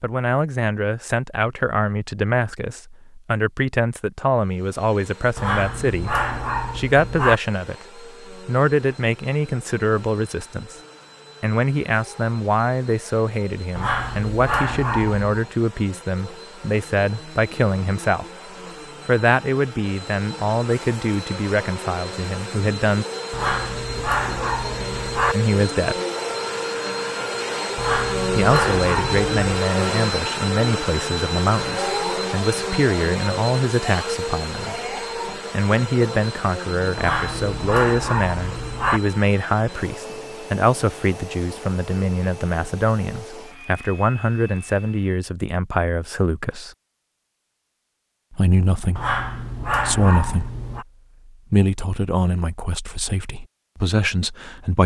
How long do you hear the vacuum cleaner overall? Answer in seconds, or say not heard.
41 s.